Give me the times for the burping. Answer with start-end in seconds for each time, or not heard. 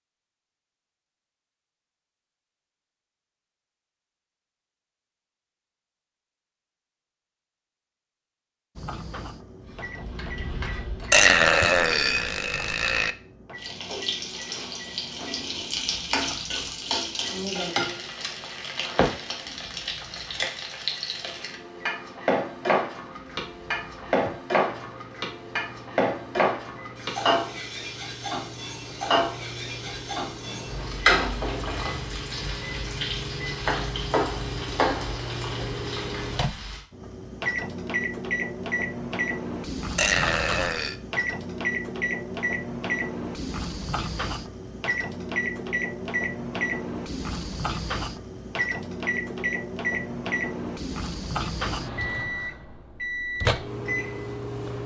11.1-13.2, 40.0-41.0.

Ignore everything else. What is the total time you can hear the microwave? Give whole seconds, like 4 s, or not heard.
46 s.